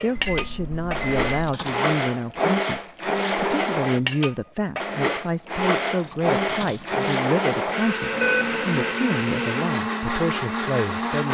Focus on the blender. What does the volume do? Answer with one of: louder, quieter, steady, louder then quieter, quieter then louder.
steady.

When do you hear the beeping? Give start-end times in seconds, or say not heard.
0.1-1.6, 8.1-8.9.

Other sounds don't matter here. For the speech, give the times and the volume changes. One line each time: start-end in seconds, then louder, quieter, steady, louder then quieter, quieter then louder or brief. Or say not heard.
0.0-11.2 steady.